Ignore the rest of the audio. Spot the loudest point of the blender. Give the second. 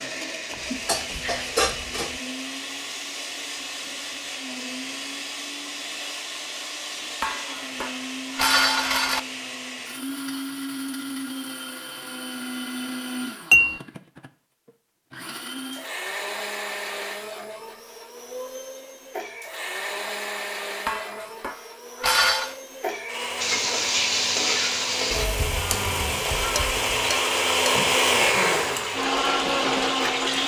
28 s.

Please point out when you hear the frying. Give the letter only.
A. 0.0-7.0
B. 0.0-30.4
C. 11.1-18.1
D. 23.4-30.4
D.